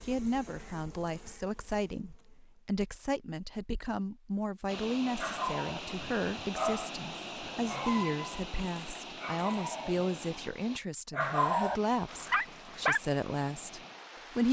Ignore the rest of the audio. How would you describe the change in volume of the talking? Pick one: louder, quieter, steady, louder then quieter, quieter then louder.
steady.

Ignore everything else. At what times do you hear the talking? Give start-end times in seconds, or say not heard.
0.1-14.4.